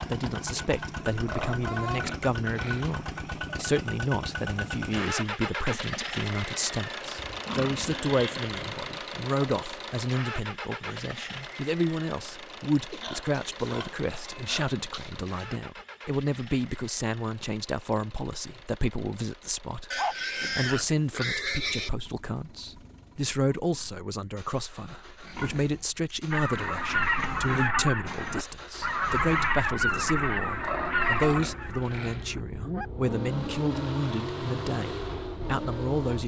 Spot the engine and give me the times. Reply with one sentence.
You can hear the engine from 0.0 to 36.2 s.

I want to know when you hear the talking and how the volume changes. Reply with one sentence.
The talking can be heard from 0.1 to 36.2 s, at a steady volume.